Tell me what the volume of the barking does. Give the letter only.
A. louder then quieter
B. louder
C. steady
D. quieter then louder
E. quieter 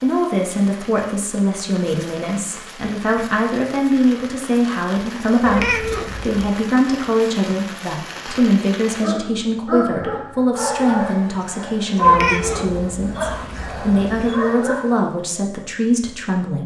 A.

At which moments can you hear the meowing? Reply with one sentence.
You can hear the meowing from 5.5 to 6.5 s and from 12.0 to 14.3 s.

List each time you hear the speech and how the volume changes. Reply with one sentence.
The speech can be heard from 0.0 to 16.6 s, at a steady volume.